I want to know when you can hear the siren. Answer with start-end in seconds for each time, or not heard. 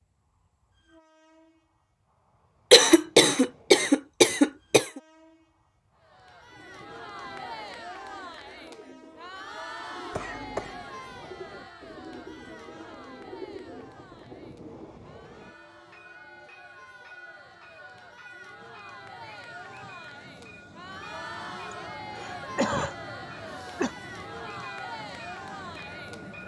not heard.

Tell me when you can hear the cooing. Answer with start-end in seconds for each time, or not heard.
6.5-14.9.